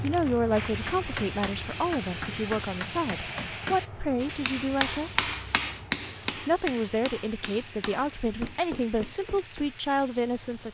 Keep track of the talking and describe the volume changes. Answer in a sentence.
The loudness of the talking stays about the same.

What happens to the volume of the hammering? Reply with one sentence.
The loudness of the hammering goes up, then down.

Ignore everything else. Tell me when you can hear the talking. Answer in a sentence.
The talking can be heard from 0.0 to 5.2 s and from 6.3 to 10.6 s.